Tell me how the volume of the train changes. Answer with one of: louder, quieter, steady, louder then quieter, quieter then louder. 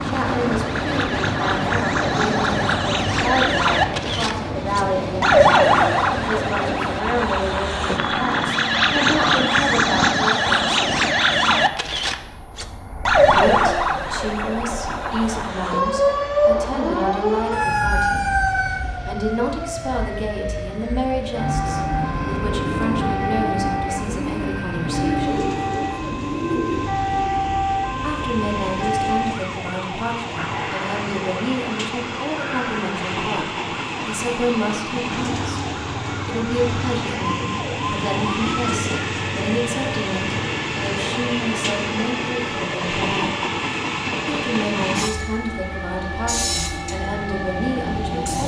quieter then louder.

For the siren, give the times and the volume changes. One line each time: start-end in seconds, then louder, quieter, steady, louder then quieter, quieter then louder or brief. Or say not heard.
0.0-48.1 quieter.